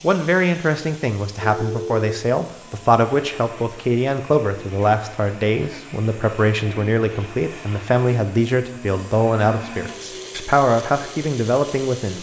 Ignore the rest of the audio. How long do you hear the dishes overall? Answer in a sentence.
The dishes can't be heard in this clip.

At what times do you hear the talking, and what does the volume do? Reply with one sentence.
You can hear the talking from 0.0 to 12.1 s, at a steady volume.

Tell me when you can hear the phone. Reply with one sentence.
You can hear the phone from 1.4 to 2.2 s.